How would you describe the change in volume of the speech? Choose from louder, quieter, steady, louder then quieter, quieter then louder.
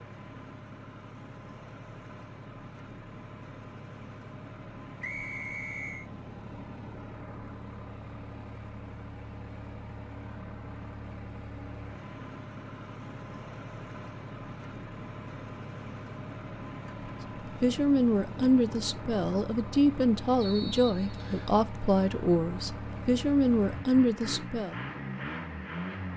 steady.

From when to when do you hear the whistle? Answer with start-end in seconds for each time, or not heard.
5.0-6.0, 20.4-21.5.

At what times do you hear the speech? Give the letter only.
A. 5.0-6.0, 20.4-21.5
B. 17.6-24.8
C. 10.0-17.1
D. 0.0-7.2
B.